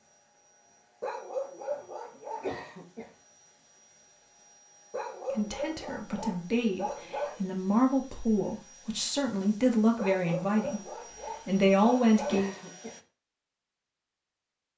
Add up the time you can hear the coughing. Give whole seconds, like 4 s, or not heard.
2 s.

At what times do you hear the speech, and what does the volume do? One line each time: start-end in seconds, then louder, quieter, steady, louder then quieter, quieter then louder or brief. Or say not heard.
5.3-12.6 louder.